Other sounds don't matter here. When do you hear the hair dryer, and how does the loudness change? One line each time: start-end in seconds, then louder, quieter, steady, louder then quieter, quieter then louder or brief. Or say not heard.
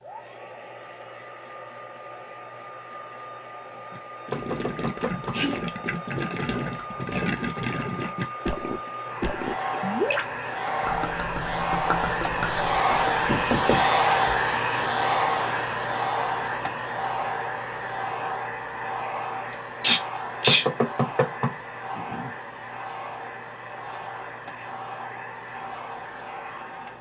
0.0-26.9 louder then quieter.